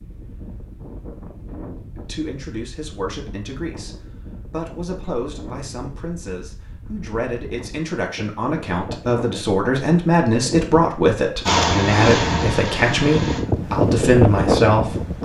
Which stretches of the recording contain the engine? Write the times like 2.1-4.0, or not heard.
11.4-13.4.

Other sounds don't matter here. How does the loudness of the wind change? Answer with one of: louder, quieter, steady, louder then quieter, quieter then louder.
louder.